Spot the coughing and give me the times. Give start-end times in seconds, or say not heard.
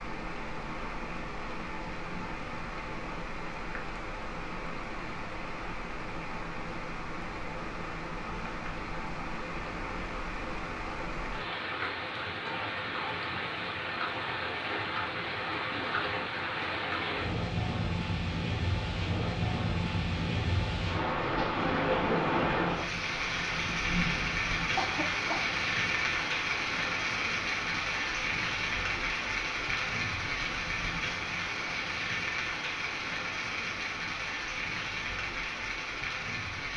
24.8-25.6.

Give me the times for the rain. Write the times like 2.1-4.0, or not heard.
0.0-36.7.